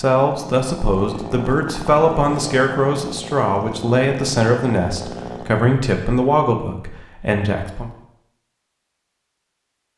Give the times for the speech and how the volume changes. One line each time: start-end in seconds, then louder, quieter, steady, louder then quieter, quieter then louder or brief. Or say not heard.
0.0-7.9 steady.